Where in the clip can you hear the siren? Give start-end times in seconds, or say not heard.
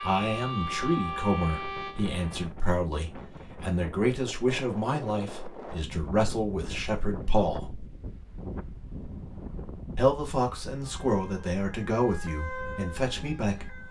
0.0-2.5, 10.8-13.8.